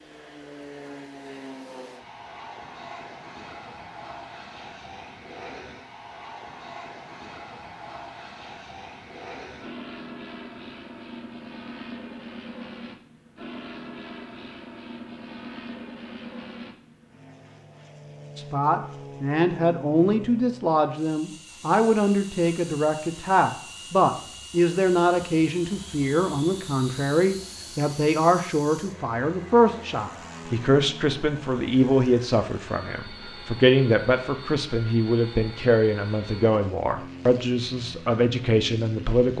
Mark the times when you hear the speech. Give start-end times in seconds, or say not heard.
18.4-39.3.